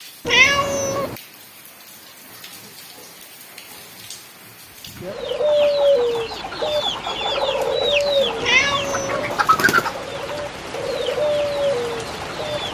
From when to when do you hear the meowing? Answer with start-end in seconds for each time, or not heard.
0.2-1.1, 8.4-9.3.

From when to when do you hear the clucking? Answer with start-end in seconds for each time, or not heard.
5.1-12.6.